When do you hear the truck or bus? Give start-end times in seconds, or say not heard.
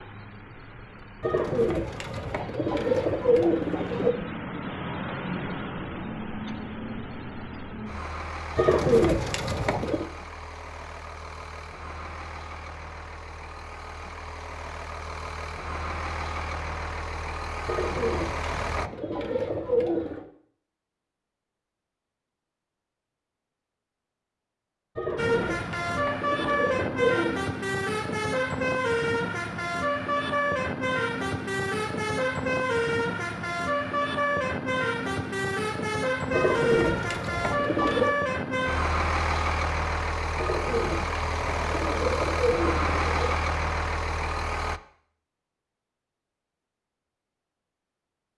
0.0-18.9, 25.1-44.8.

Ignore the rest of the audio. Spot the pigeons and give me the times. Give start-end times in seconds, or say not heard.
1.2-4.2, 8.6-10.1, 17.6-20.2, 24.9-27.4, 36.3-38.1, 40.4-43.4.